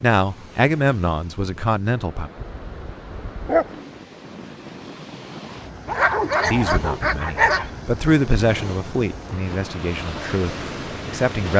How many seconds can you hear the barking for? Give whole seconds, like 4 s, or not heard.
3 s.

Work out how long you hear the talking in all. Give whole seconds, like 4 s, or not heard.
7 s.